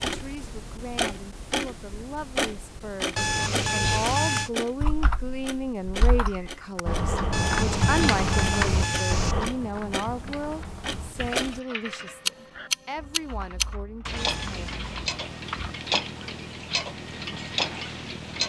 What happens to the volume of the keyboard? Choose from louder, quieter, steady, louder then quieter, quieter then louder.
louder then quieter.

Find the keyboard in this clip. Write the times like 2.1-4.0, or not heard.
4.3-16.2.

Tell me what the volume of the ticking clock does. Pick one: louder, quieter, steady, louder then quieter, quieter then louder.
quieter then louder.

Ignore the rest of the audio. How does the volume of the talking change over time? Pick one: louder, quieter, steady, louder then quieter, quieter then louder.
louder then quieter.